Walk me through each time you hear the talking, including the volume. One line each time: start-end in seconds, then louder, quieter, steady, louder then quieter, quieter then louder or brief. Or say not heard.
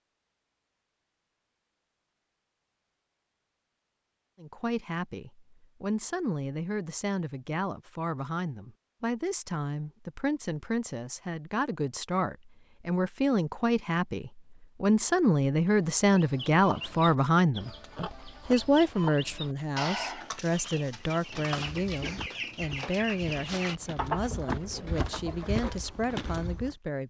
4.4-27.0 louder then quieter.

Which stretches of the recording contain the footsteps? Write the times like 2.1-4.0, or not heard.
21.5-26.8.